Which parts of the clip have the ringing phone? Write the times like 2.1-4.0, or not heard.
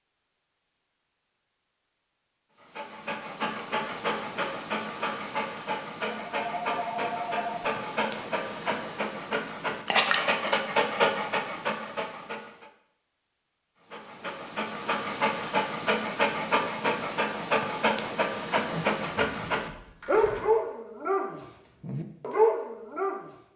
6.3-7.7, 18.7-20.6.